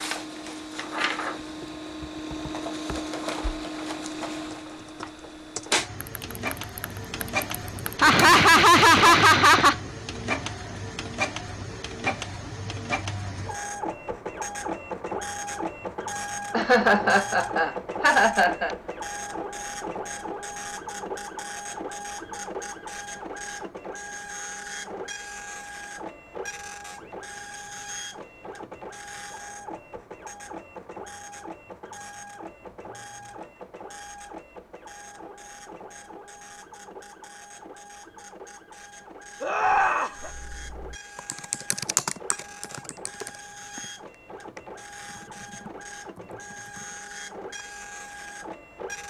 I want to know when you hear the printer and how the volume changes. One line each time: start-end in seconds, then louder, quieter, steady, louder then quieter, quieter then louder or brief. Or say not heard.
0.0-49.0 quieter.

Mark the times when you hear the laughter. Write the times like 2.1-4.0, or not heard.
8.0-9.8, 16.5-18.8, 39.4-40.3.